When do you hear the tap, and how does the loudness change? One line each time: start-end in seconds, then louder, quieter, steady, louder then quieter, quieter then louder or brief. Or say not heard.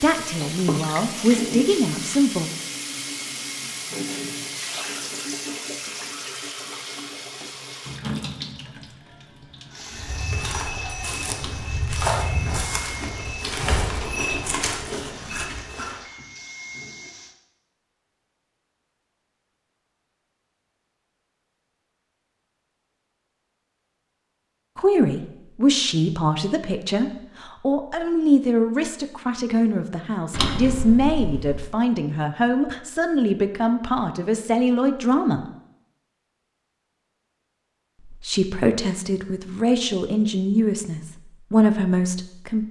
0.0-17.4 quieter.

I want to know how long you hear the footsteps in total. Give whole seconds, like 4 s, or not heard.
6 s.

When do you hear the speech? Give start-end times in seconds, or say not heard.
0.0-2.5, 24.8-35.4, 38.0-42.6.